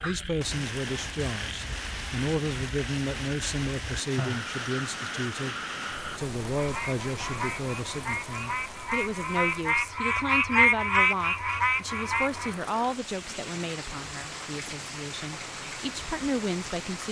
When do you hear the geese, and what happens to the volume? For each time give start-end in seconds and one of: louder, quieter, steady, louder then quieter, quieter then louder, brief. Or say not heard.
not heard.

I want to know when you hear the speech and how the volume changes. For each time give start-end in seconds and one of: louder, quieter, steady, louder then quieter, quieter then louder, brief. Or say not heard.
0.0-17.0 steady.